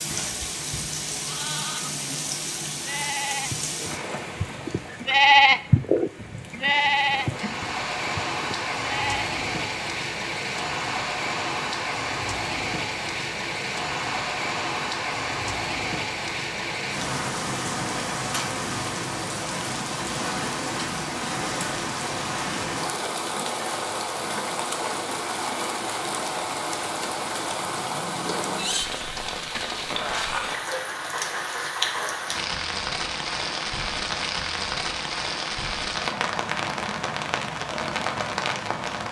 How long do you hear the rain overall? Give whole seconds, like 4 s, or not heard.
39 s.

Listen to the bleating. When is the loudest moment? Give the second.
5 s.